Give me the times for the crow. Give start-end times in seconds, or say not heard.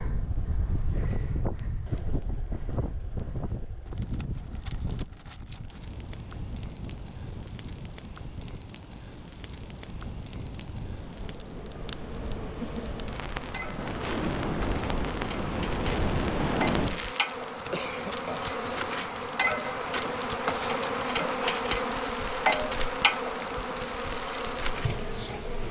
not heard.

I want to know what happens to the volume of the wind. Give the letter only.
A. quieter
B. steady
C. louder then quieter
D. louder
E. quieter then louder
E.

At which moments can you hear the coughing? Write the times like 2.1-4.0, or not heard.
17.7-19.1.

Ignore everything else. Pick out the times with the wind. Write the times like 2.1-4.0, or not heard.
0.0-17.1.